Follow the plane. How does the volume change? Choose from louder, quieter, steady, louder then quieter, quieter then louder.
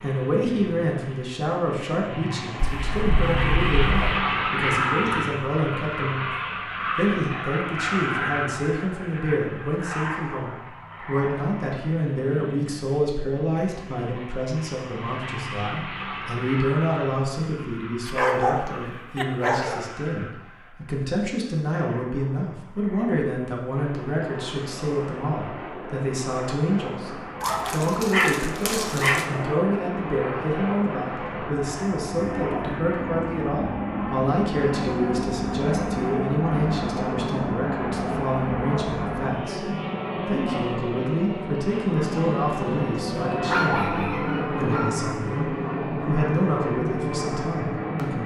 quieter then louder.